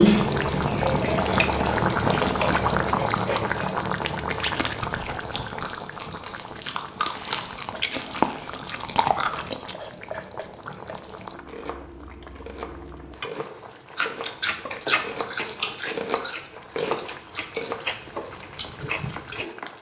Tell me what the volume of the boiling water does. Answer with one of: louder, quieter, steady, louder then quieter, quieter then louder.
quieter.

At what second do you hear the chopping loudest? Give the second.
17 s.